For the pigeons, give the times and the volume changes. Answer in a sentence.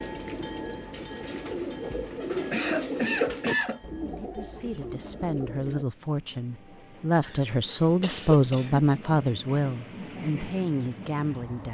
The pigeons can be heard from 0.0 to 5.8 s, getting louder then quieter.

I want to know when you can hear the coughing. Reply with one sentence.
The coughing can be heard from 2.5 to 3.8 s and from 7.2 to 8.8 s.